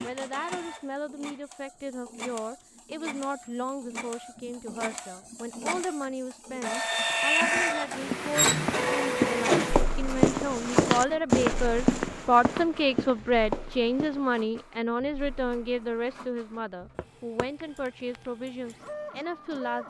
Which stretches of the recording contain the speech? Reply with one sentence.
You can hear the speech from 0.0 to 19.8 s.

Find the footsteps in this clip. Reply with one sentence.
The footsteps can be heard from 7.0 to 14.4 s.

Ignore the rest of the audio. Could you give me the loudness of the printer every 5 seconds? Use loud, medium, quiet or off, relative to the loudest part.
quiet, loud, quiet, quiet.